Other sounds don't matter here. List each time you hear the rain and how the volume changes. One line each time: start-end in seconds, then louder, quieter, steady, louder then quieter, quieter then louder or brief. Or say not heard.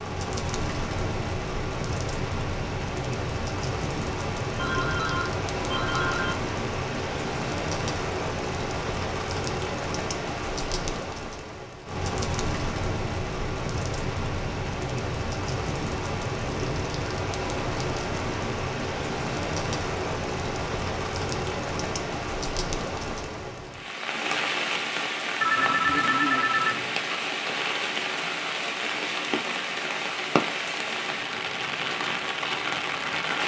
0.0-33.4 steady.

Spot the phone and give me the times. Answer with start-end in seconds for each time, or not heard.
4.5-6.3, 25.4-27.1.